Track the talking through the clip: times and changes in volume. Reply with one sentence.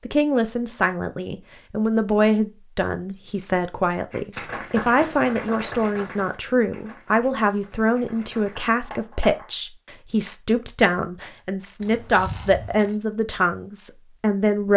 The talking can be heard from 0.1 to 14.7 s, at a steady volume.